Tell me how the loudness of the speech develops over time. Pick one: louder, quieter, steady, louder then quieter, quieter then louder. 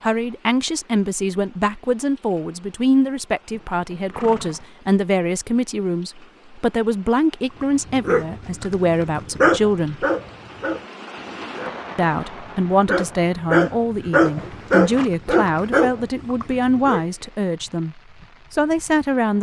steady.